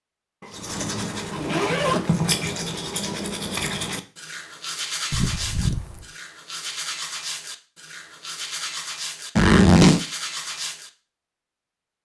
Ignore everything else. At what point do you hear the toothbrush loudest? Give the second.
2 s.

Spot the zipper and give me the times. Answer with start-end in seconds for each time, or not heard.
0.4-2.2, 5.1-6.0, 9.3-10.0.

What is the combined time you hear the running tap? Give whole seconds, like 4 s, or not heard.
not heard.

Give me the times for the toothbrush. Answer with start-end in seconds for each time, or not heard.
0.5-10.9.